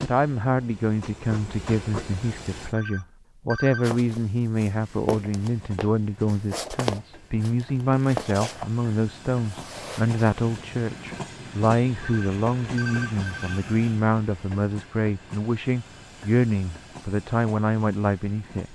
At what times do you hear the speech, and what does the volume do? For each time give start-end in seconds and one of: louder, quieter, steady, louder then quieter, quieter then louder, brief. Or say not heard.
0.0-18.7 steady.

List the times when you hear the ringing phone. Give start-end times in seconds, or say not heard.
2.7-3.9, 12.0-13.6.